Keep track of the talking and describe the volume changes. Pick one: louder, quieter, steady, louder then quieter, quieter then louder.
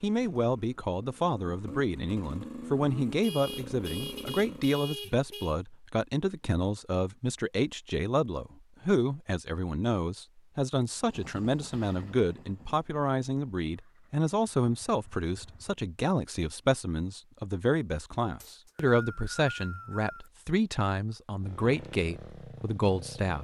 steady.